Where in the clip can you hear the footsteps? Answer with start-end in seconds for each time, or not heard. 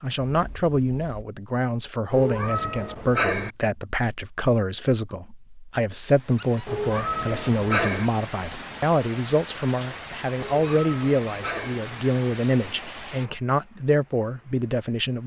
not heard.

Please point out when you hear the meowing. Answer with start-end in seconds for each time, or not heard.
2.1-3.5, 6.7-8.1, 10.3-11.8.